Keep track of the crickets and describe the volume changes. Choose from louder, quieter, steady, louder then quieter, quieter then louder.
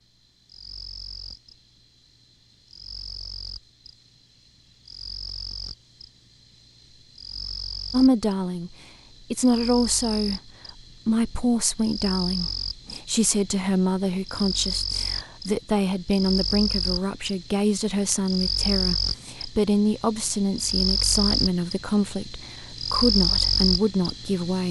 louder.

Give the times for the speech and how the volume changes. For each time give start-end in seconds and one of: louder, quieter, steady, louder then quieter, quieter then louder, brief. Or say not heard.
7.9-8.7 brief
9.3-10.4 brief
11.1-24.6 steady.